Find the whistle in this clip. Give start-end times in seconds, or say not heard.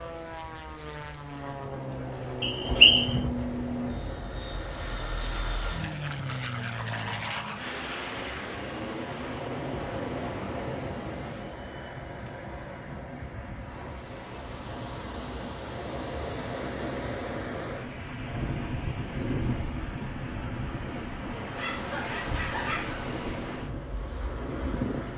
2.4-3.1.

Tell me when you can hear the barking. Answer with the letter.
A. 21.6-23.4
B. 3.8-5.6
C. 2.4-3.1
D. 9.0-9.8
A.